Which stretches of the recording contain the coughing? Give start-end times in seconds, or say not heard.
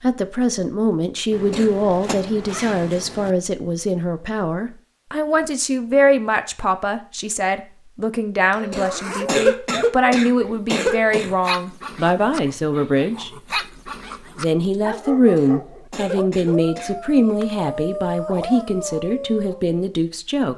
1.5-2.1, 8.7-11.3, 15.3-16.9.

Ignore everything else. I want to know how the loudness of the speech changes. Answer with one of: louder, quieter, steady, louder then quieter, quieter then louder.
steady.